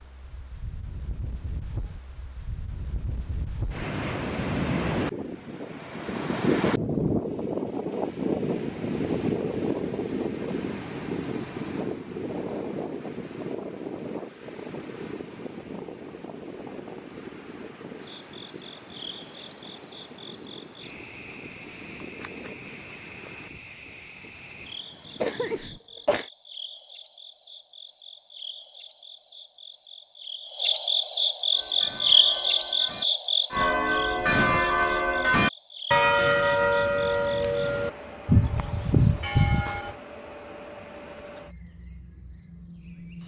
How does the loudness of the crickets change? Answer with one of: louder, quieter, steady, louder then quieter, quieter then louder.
louder then quieter.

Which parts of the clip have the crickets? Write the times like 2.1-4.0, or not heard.
18.0-43.2.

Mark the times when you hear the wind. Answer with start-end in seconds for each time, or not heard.
0.0-25.8.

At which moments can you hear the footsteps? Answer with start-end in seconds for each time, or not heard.
not heard.